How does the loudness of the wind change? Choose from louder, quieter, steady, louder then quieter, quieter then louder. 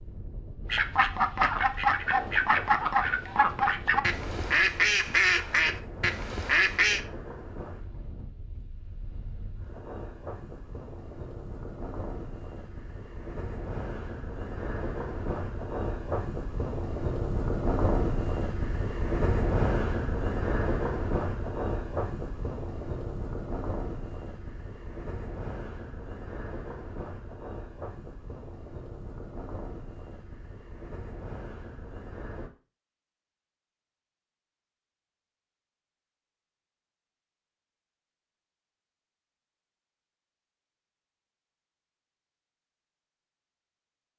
louder then quieter.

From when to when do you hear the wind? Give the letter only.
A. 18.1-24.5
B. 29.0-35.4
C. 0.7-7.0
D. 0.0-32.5
D.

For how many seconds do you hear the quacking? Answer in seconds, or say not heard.
6 s.